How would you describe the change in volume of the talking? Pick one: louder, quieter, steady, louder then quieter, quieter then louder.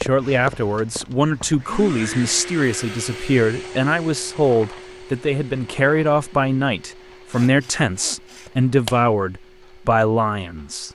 steady.